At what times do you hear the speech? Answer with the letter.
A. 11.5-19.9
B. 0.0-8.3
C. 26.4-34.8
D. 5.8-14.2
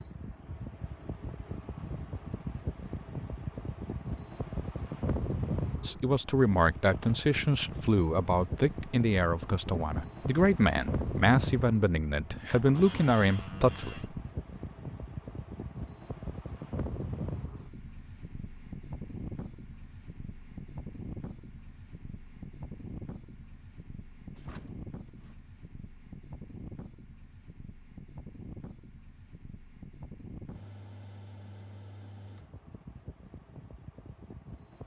D.